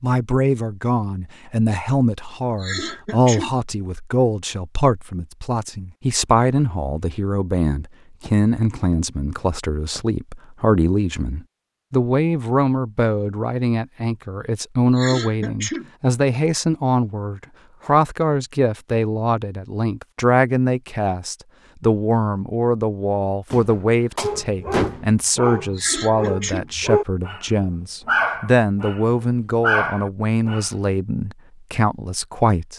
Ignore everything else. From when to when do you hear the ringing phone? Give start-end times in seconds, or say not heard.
not heard.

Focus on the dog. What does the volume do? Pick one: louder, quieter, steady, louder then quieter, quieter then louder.
louder.